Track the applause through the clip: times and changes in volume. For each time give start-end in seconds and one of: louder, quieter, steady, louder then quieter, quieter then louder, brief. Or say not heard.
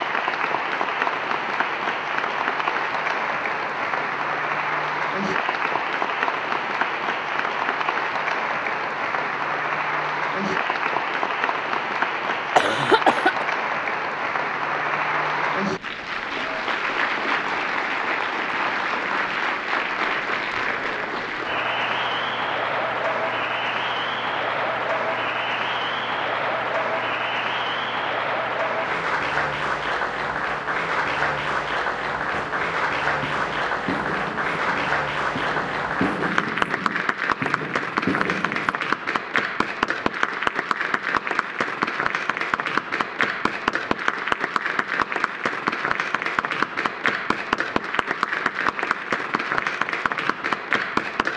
0.0-51.3 steady.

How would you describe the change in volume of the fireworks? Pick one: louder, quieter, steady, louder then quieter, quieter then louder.
louder.